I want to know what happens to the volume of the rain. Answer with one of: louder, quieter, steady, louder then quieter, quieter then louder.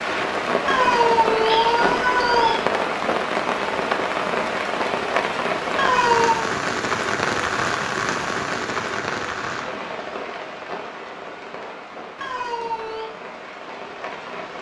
quieter.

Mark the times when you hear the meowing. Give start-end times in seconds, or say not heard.
0.7-2.5, 5.8-6.5, 12.2-13.1.